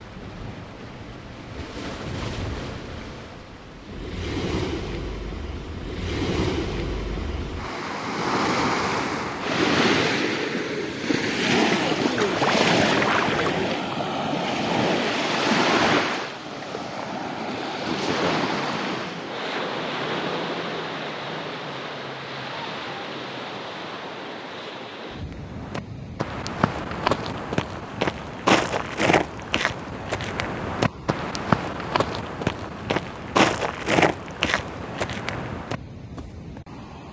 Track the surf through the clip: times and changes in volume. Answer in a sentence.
You can hear the surf from 0.0 to 37.0 s, getting louder then quieter.